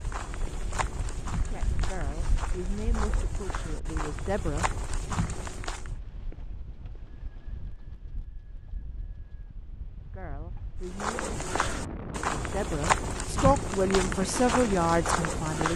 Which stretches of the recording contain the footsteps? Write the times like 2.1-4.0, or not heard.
0.0-5.9, 10.8-15.7.